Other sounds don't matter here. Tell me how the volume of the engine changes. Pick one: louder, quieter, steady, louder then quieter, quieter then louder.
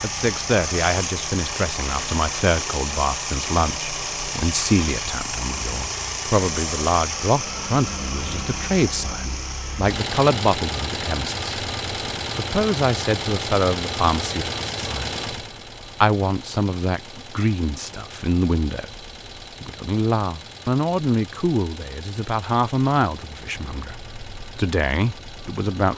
quieter.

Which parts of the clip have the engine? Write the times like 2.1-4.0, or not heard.
0.0-25.9.